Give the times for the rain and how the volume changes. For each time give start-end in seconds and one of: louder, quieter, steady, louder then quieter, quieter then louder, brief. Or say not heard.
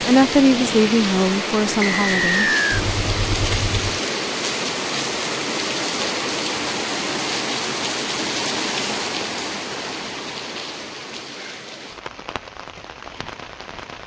0.0-14.0 quieter.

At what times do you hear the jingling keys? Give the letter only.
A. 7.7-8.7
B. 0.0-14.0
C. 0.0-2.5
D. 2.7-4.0
D.